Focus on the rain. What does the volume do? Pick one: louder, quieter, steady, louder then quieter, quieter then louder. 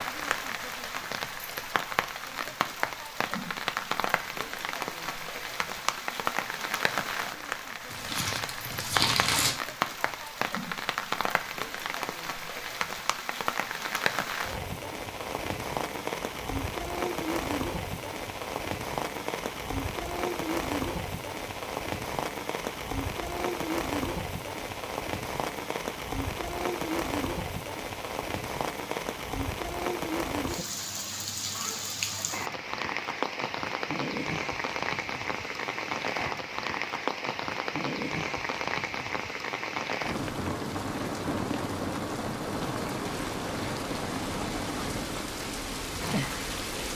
steady.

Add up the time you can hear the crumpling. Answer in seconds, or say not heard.
2 s.